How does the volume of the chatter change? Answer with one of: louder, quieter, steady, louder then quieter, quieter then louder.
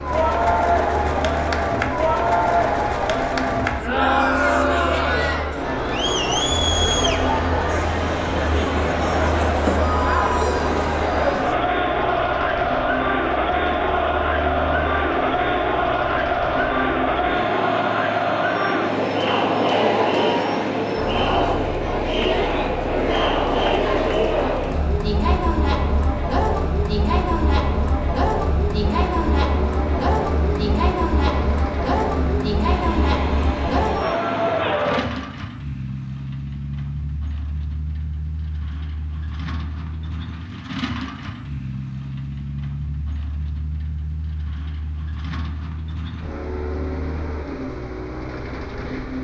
steady.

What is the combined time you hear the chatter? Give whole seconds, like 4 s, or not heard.
35 s.